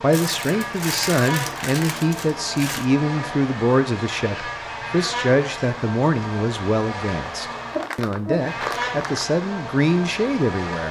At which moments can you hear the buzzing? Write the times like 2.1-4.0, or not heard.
0.0-10.8.